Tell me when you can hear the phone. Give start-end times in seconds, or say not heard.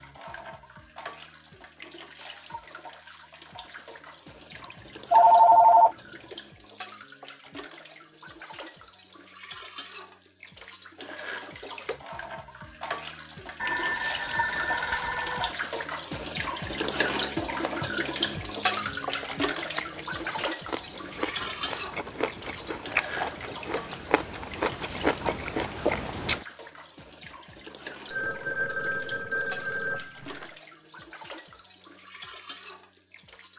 4.5-6.4, 13.6-15.5, 28.1-30.5.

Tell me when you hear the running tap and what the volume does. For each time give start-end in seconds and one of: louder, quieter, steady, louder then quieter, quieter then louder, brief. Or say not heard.
0.0-33.5 louder then quieter.